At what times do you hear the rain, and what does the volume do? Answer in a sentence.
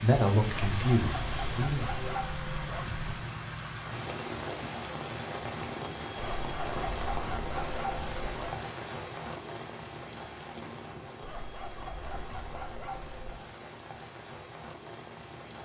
The rain can be heard from 0.0 to 15.6 s, getting quieter.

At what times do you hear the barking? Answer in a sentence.
The barking can be heard from 0.5 to 3.1 s, from 6.2 to 8.7 s and from 11.2 to 13.2 s.